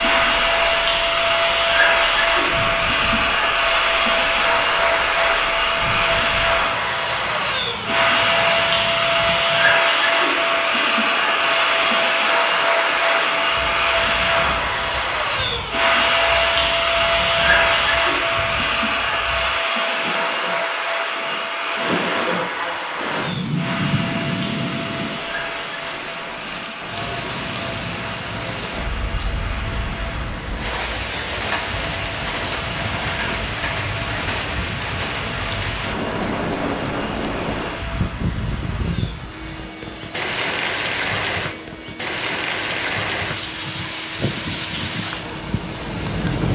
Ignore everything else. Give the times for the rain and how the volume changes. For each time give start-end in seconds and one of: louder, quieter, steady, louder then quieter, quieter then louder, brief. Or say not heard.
0.0-46.4 louder.